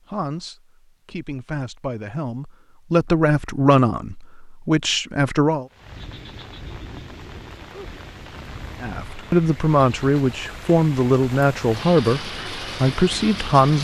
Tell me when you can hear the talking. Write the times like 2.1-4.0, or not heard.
0.1-5.7, 8.8-13.8.